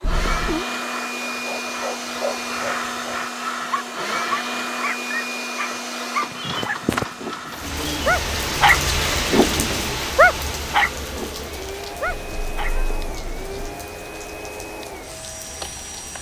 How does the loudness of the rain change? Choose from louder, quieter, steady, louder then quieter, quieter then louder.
quieter.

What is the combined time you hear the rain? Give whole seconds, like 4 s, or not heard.
9 s.